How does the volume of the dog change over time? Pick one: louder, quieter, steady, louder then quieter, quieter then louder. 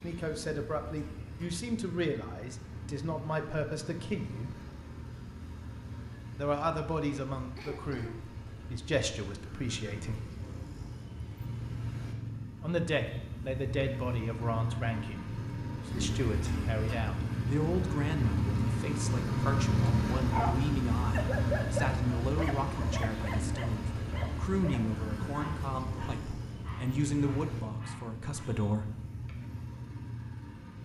quieter.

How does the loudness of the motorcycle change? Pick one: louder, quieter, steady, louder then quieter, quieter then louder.
louder then quieter.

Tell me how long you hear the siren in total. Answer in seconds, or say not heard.
not heard.